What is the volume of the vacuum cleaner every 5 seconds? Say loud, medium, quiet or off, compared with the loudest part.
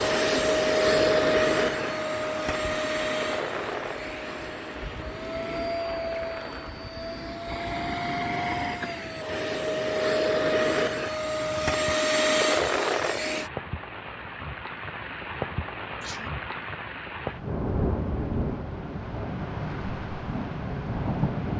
loud, medium, loud, off, off.